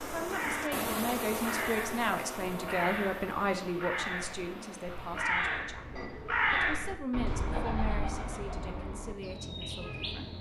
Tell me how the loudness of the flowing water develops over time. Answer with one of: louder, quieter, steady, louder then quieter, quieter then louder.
quieter.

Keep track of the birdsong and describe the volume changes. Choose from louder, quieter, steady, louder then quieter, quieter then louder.
louder then quieter.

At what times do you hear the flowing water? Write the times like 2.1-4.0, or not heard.
0.0-5.3.